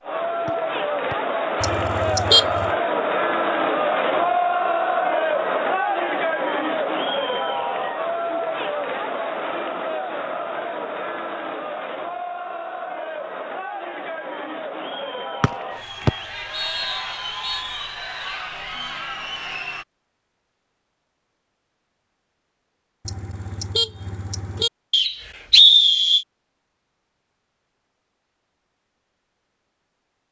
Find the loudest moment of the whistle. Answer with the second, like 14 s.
26 s.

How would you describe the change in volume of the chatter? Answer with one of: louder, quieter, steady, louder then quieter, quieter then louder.
quieter.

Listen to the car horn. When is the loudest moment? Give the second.
2 s.